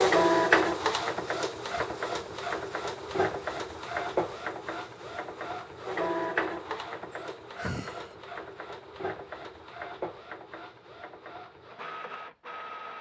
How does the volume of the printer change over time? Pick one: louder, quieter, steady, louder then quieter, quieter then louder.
quieter.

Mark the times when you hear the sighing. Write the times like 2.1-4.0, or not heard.
7.5-8.2.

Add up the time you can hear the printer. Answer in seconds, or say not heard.
13 s.